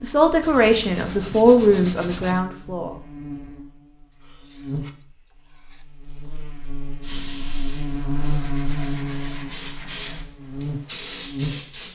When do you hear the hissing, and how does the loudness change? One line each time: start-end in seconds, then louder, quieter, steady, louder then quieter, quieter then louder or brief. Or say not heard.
7.0-11.9 quieter then louder.